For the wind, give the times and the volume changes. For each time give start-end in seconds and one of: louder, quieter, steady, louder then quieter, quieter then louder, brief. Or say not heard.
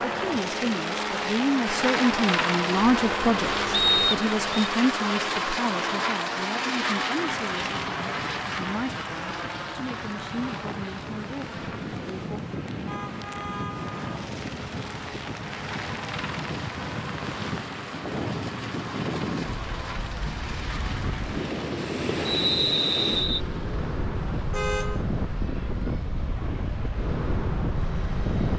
7.1-28.5 louder.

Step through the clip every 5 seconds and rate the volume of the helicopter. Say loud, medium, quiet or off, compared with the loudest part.
loud, loud, quiet, medium, quiet, quiet.